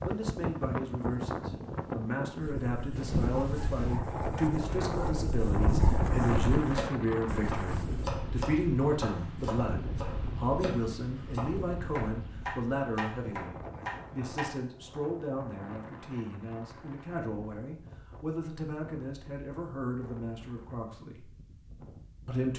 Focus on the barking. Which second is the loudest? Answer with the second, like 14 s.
6 s.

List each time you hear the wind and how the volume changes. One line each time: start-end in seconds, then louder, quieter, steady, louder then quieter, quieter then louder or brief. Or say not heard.
0.0-22.4 quieter.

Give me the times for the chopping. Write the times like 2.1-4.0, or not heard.
6.7-14.5.